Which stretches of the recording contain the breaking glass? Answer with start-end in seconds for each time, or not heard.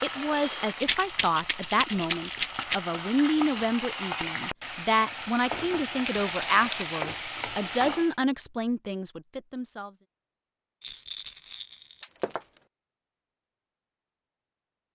0.1-1.0, 12.0-12.6.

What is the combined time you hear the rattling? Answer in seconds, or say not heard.
4 s.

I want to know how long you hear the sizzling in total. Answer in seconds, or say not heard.
8 s.